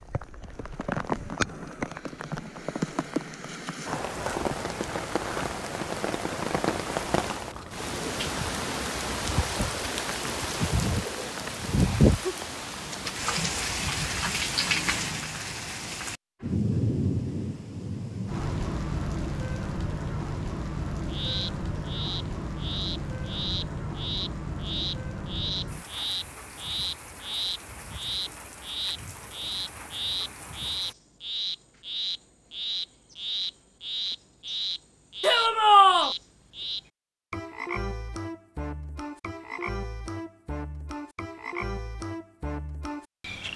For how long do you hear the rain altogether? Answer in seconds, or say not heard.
31 s.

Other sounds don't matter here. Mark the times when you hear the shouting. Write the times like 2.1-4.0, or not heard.
35.2-36.1.